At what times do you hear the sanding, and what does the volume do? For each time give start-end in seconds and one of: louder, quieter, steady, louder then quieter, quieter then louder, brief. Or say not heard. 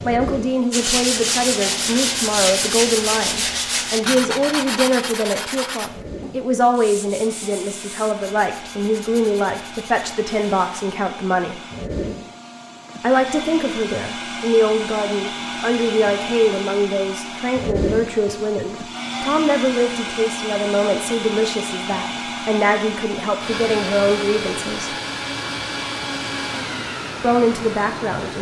0.7-10.7 quieter.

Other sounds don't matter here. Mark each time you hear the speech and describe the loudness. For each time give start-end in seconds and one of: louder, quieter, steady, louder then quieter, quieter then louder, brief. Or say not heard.
0.0-11.6 steady
13.0-24.9 steady
27.2-28.3 brief.